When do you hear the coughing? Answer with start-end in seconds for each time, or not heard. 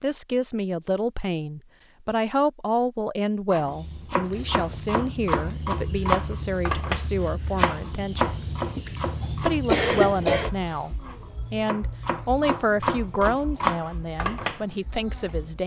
9.7-10.5.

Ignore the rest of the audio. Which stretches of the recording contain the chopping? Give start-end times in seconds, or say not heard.
3.5-14.8.